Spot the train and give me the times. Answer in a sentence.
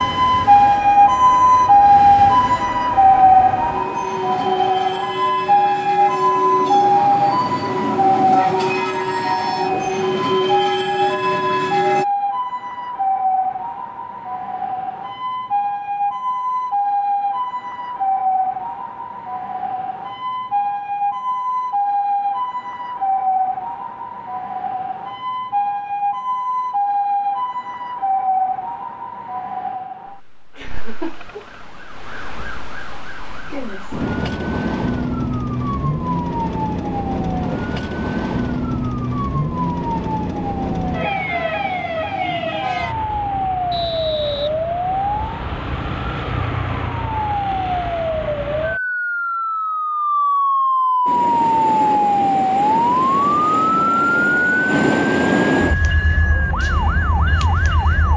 The train can be heard from 0.0 to 12.1 s and from 51.0 to 58.1 s.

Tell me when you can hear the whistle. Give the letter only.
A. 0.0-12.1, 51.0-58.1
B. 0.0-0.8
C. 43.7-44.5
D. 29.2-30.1
C.